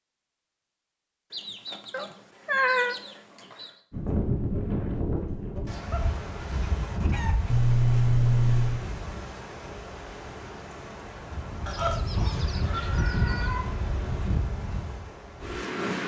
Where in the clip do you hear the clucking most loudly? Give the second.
12 s.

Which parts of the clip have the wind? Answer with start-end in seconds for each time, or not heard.
3.9-16.0.